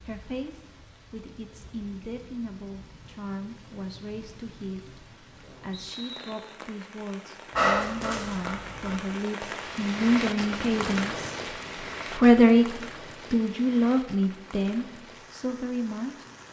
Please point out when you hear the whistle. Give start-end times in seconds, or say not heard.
5.8-6.6.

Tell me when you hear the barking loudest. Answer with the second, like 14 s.
8 s.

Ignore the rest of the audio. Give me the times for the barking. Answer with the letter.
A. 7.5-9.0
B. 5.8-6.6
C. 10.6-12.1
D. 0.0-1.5
A.